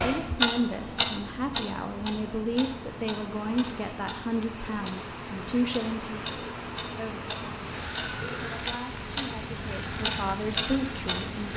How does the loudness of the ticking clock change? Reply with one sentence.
The loudness of the ticking clock goes down, then up.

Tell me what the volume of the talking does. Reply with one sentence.
The volume of the talking goes down, then up.